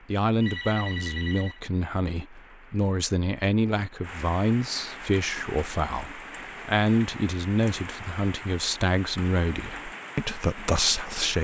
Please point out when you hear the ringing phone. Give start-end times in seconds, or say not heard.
0.4-1.6.